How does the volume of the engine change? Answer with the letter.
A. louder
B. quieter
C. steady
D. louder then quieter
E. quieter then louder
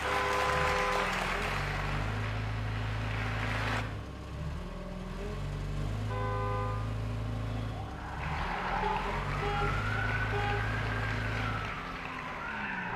C.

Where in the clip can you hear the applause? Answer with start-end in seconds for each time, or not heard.
0.0-3.9, 8.2-12.9.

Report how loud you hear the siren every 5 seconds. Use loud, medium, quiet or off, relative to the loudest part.
off, loud, loud.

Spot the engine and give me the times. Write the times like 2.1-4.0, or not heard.
0.0-12.9.